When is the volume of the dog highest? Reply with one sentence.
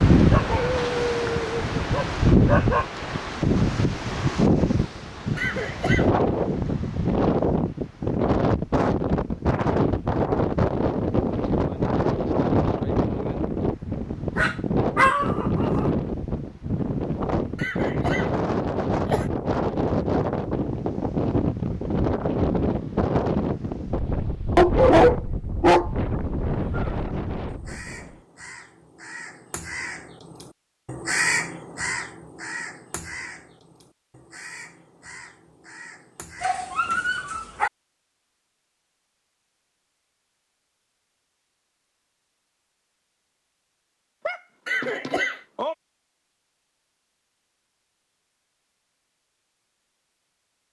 The volume of the dog peaks at 25 seconds.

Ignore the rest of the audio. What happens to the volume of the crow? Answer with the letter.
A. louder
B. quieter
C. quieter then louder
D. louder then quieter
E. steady
D.